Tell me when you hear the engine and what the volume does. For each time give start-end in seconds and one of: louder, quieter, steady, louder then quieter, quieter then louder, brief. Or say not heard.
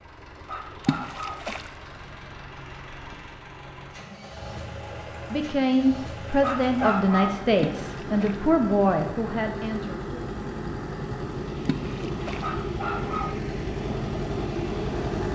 0.0-15.3 louder.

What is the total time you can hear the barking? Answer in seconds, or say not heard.
3 s.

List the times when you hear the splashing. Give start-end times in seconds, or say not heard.
0.8-1.7, 7.5-8.4, 11.7-12.5.